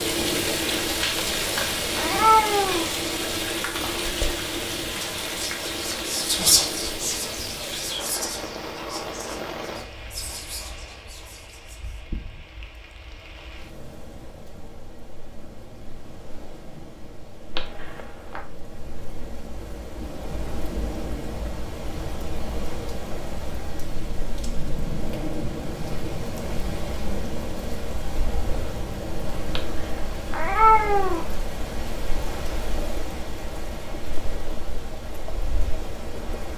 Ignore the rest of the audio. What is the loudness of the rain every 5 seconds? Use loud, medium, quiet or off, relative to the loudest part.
loud, medium, quiet, quiet, medium, medium, medium, medium.